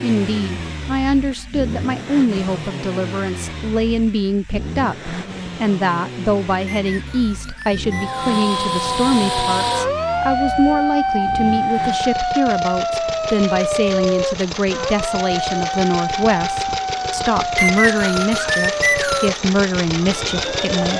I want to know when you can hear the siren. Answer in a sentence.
The siren can be heard from 7.8 to 20.9 s.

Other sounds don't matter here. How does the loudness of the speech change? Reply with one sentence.
The volume of the speech stays about the same.